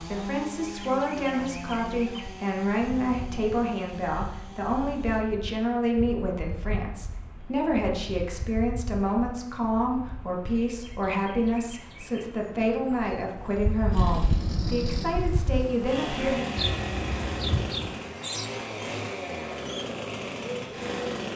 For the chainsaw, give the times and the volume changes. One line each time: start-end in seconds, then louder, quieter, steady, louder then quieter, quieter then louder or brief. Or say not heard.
0.0-5.2 quieter
13.9-21.3 steady.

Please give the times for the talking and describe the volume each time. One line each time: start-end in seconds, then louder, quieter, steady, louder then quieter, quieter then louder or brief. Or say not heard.
0.0-16.6 steady.